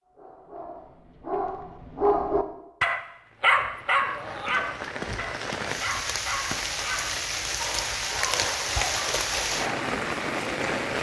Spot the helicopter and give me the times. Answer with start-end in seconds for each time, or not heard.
not heard.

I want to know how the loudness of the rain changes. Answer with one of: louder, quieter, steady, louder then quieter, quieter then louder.
louder.